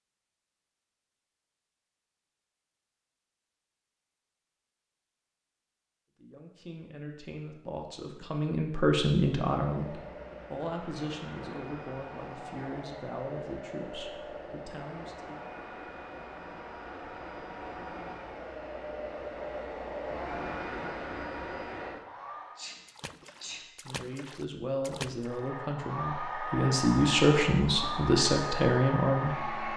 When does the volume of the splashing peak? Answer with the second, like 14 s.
25 s.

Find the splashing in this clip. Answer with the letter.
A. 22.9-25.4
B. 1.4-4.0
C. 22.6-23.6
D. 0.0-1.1
A.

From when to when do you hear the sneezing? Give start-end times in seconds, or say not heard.
22.6-23.6.